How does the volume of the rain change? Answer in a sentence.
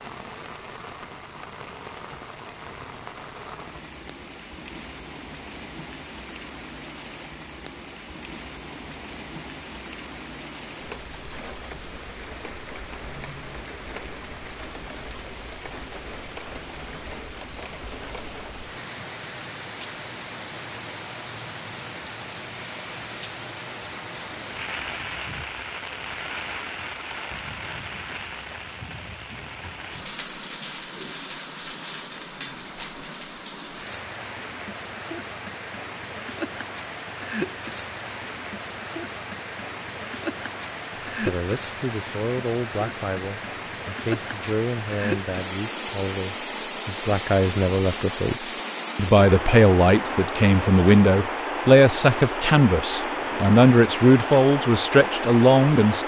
The volume of the rain goes up.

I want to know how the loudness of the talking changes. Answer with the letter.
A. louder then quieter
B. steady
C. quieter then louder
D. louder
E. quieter
D.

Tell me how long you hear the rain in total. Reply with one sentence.
You can hear the rain for 56 seconds altogether.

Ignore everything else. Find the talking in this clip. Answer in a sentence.
The talking can be heard from 41.2 to 56.0 s.